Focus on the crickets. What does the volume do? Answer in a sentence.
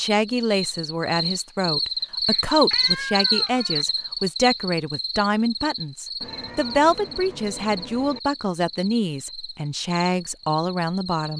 The volume of the crickets goes down.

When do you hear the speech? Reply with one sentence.
The speech can be heard from 0.0 to 11.3 s.